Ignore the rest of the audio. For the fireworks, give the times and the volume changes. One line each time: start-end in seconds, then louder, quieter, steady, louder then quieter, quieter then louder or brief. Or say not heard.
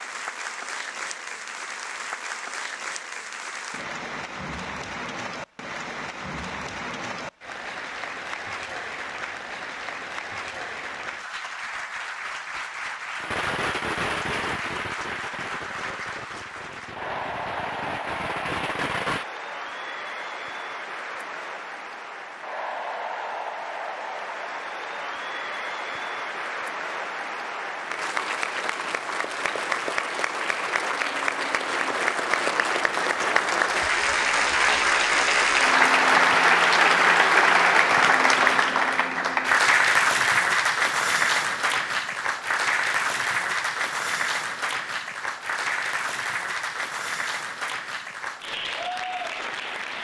13.2-19.2 quieter then louder.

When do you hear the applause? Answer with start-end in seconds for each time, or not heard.
0.0-49.9.